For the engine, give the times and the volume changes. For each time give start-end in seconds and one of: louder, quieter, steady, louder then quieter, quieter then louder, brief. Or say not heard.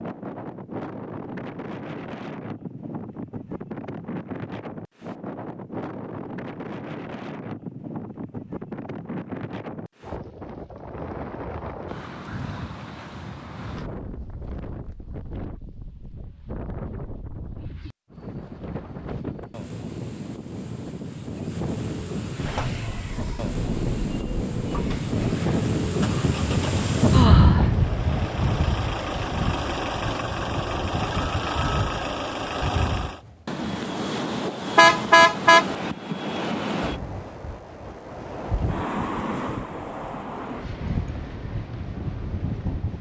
22.4-33.2 louder.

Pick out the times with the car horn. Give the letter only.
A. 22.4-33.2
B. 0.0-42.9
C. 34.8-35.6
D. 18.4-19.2
C.